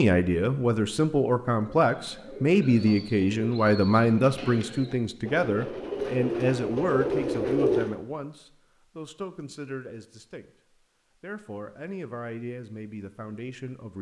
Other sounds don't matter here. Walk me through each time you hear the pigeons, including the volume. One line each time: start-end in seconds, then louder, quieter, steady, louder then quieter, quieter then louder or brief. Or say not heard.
1.5-8.0 louder.